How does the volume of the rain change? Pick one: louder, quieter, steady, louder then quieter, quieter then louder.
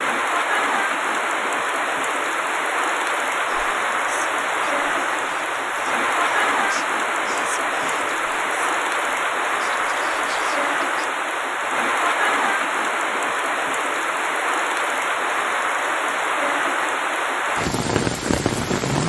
steady.